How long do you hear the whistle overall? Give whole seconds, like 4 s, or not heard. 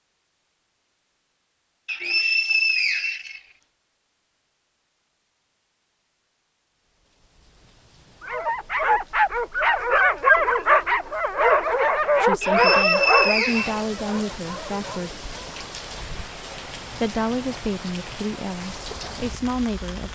3 s.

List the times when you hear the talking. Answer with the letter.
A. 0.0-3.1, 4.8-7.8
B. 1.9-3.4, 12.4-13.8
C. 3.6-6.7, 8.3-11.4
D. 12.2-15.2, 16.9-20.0
D.